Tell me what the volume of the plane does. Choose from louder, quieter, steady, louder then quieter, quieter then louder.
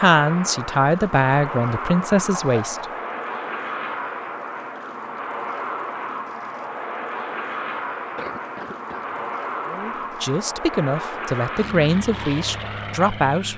steady.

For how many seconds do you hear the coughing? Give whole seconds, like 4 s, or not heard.
2 s.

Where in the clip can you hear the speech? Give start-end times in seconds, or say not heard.
0.0-2.9, 9.7-13.5.